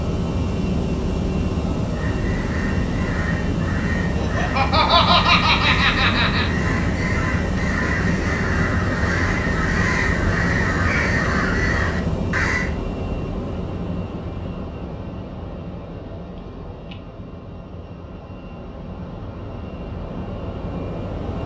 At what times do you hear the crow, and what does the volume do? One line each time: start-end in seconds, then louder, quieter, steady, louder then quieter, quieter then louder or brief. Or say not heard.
1.9-12.7 louder.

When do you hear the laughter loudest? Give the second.
5 s.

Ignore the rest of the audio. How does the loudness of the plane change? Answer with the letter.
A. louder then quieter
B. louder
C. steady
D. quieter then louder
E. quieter
E.